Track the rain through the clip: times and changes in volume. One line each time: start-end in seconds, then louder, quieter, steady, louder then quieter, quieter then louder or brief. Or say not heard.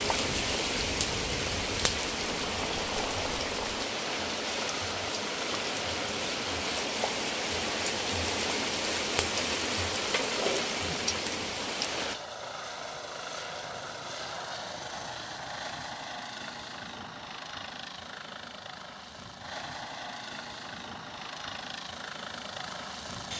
0.0-12.2 steady.